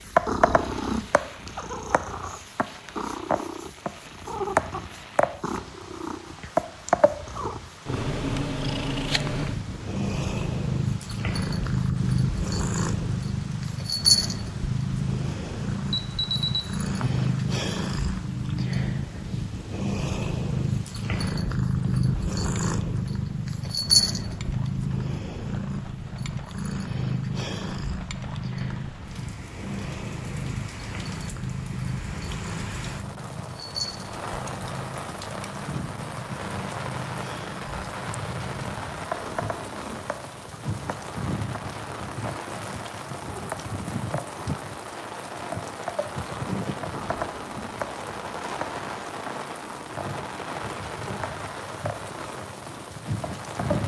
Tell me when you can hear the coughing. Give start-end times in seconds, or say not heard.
not heard.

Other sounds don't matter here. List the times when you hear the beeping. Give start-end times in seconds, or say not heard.
15.9-17.1.